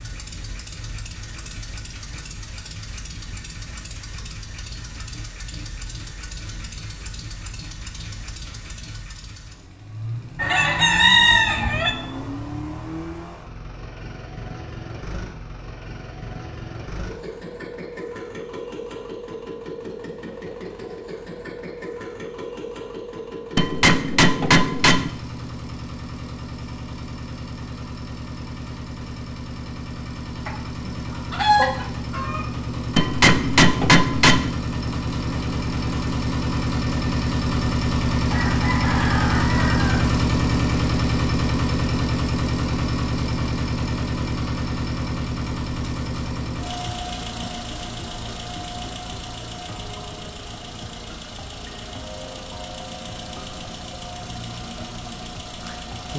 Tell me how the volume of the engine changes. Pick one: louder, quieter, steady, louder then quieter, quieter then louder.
louder then quieter.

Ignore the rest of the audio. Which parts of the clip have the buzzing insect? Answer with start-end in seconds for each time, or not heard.
not heard.